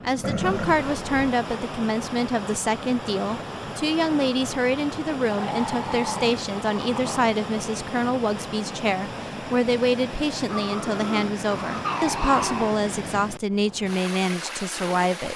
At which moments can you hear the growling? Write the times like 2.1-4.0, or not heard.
0.2-1.1, 5.3-7.3, 10.5-12.8.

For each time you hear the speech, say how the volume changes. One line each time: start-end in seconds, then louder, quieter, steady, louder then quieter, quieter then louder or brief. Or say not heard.
0.0-15.3 steady.